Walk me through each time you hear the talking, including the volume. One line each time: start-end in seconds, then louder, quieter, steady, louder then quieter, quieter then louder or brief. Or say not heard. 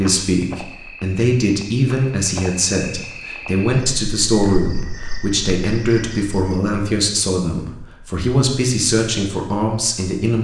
0.0-10.4 steady.